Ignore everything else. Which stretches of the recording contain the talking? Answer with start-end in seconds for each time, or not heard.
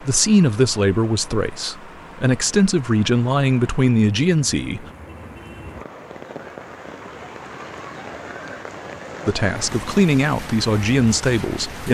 0.0-4.8, 9.2-11.8.